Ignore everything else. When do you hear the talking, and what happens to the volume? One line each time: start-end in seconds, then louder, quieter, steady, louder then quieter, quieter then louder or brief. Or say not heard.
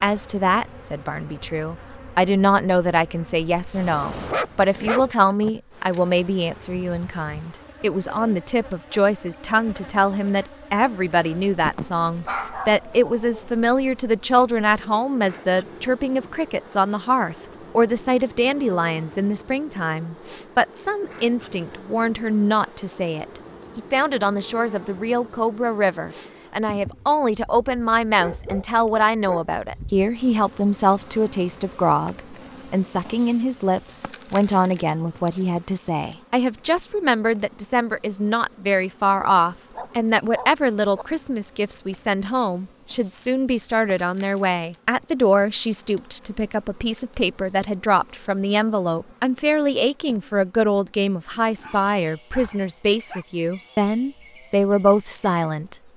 0.0-55.8 steady.